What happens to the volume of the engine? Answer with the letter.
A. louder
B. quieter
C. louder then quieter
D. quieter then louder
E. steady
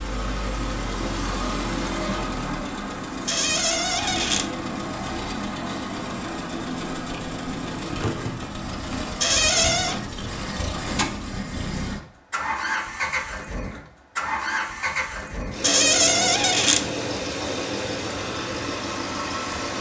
E.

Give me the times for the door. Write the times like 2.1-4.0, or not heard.
3.2-4.5, 9.2-10.0, 15.6-16.9.